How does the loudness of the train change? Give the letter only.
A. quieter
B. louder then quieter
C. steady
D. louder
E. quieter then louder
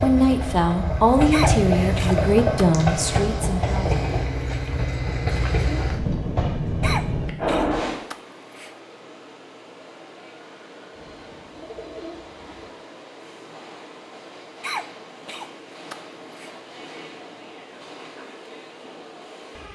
A.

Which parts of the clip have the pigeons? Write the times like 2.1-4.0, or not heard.
10.9-12.8.